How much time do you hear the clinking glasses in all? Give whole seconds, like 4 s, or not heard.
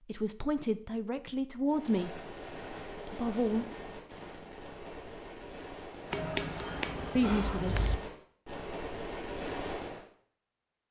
2 s.